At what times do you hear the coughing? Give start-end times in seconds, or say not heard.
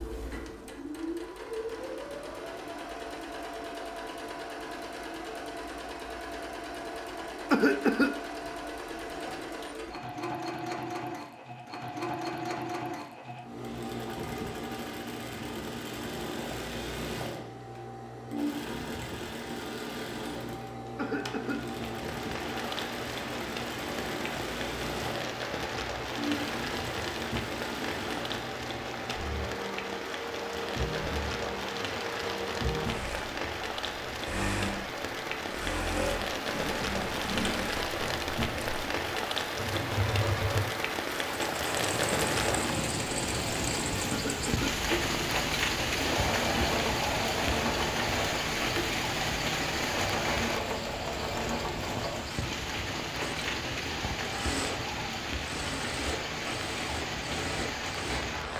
7.5-8.2, 20.9-21.7, 44.1-44.6.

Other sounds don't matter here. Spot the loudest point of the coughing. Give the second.
8 s.